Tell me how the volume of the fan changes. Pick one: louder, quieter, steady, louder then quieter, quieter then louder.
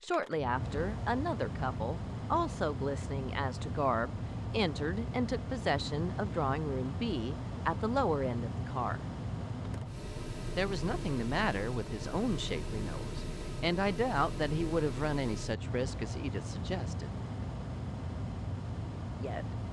steady.